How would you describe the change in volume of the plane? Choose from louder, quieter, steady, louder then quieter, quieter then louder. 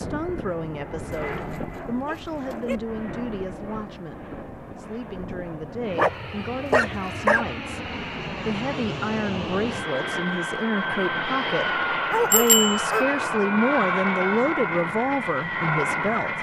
louder.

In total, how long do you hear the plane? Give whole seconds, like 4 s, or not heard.
16 s.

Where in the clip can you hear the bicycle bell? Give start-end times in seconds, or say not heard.
12.3-12.8.